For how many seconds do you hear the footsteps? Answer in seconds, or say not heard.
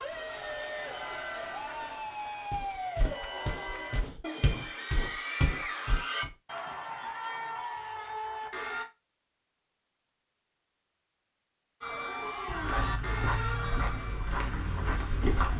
7 s.